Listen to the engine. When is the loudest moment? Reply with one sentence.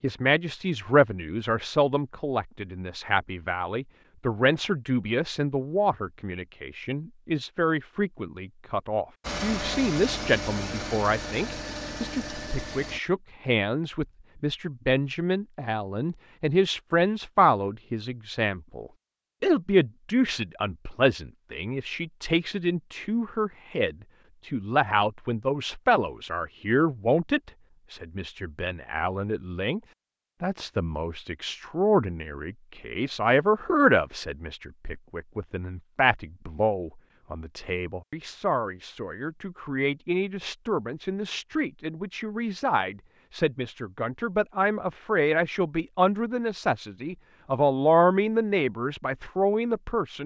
The volume of the engine peaks at 10 seconds.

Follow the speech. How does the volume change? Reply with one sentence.
The volume of the speech stays about the same.